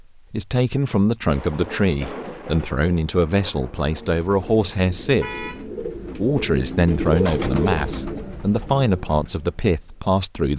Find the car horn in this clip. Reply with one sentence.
You can hear the car horn from 5.2 to 5.7 s.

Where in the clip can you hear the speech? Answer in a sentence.
You can hear the speech from 0.3 to 5.5 s and from 6.1 to 10.5 s.